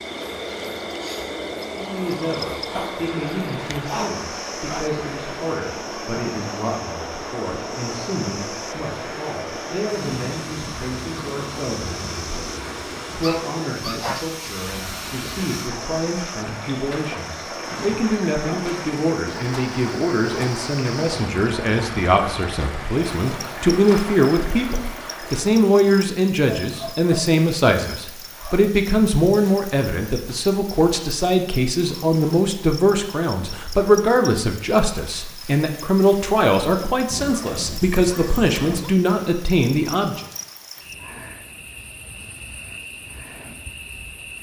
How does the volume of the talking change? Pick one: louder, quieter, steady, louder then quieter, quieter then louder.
louder.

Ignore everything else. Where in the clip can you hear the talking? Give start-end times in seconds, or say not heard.
1.8-40.2.